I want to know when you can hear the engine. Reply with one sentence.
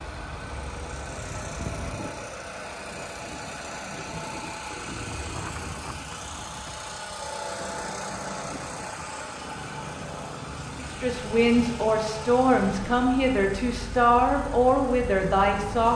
The engine can be heard from 0.0 to 15.9 s.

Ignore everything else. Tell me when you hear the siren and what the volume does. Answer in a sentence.
The siren can't be heard in this clip.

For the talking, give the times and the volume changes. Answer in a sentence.
You can hear the talking from 10.8 to 15.9 s, at a steady volume.